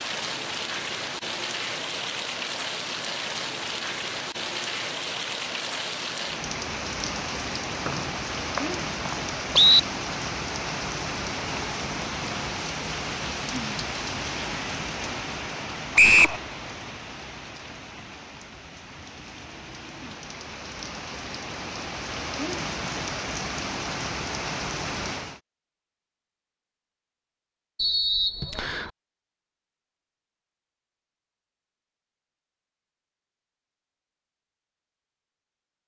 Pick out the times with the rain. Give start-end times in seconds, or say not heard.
0.0-25.4.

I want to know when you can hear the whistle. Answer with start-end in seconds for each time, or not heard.
7.8-9.8, 15.9-16.4, 27.8-28.9.